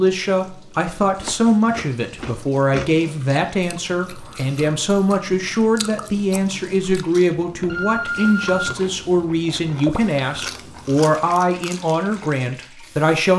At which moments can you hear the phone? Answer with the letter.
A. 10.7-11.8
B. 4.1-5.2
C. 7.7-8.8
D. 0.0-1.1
C.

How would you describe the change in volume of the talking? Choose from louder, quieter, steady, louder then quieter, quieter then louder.
steady.